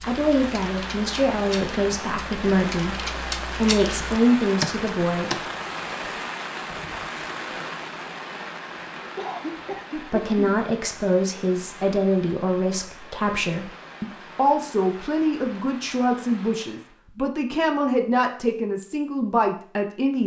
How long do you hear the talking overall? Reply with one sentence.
The talking can be heard for 16 seconds in total.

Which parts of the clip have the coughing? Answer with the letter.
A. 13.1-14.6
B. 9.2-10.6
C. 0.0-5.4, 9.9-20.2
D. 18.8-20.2
B.